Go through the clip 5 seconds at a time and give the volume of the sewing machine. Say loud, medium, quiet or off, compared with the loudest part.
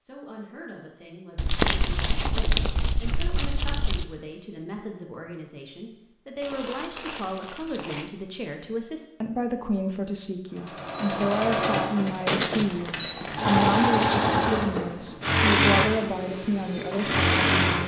off, off, loud, loud.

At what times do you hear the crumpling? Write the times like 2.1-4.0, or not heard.
1.4-4.0, 6.4-8.1, 12.2-14.1.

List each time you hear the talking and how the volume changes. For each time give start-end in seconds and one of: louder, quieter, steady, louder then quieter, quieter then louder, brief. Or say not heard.
0.0-17.8 louder.